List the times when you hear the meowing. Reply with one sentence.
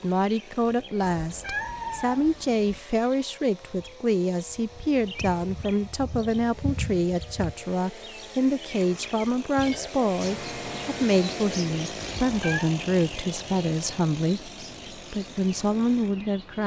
You can hear the meowing from 1.0 to 2.8 s and from 12.0 to 12.7 s.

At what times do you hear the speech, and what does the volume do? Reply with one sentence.
You can hear the speech from 0.0 to 16.6 s, at a steady volume.